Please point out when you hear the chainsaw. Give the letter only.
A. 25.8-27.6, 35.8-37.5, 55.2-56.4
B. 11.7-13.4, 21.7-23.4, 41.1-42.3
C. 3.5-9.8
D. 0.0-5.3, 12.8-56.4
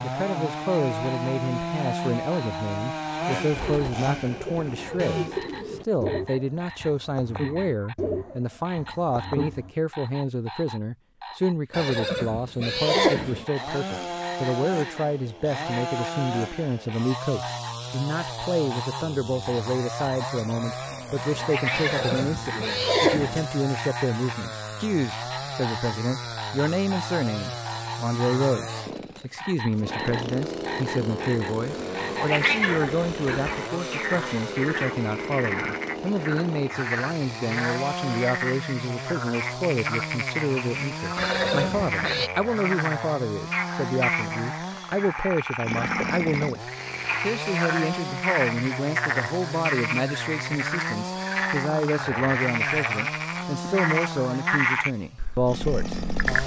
D.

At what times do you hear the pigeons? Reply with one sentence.
The pigeons can be heard from 3.5 to 9.8 s.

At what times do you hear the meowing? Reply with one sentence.
The meowing can be heard from 20.9 to 22.6 s and from 31.8 to 33.4 s.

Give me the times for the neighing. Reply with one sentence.
You can hear the neighing from 11.7 to 13.4 s, from 21.7 to 23.4 s and from 41.1 to 42.3 s.